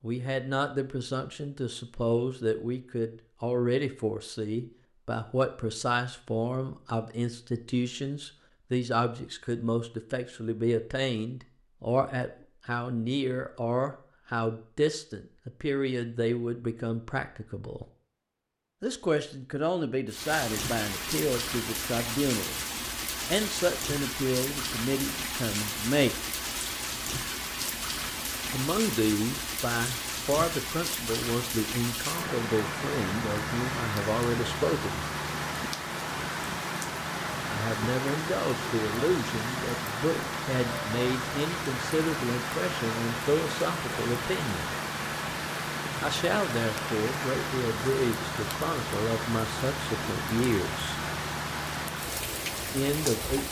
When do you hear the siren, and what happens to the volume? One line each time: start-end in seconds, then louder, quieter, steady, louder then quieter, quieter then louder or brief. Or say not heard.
not heard.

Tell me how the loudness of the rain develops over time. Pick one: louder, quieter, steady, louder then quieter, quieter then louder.
steady.